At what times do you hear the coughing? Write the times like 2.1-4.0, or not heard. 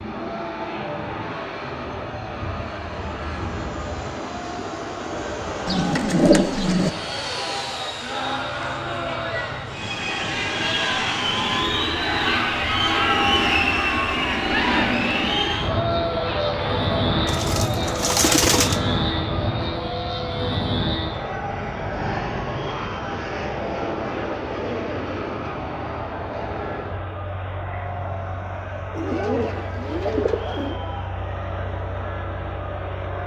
not heard.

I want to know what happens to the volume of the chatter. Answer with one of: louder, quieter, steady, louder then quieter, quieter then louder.
louder then quieter.